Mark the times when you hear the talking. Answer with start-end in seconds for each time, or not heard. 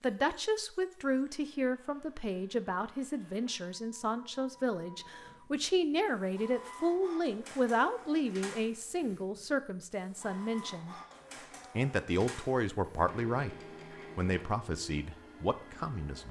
0.0-10.9, 11.8-13.6, 14.2-16.2.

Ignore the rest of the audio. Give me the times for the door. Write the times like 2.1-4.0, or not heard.
not heard.